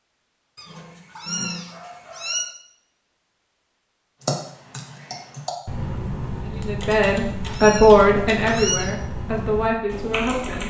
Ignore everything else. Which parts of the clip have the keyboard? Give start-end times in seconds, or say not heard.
4.2-10.6.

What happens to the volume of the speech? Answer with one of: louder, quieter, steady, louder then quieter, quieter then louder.
louder then quieter.